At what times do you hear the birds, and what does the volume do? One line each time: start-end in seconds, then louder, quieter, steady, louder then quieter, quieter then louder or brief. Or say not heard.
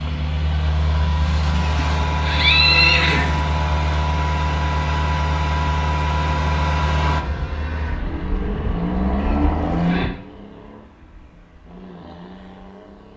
not heard.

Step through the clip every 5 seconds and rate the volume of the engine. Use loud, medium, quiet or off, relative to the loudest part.
loud, loud, quiet.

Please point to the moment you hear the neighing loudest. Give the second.
3 s.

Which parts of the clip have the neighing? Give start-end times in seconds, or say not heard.
1.6-3.4, 9.2-10.1.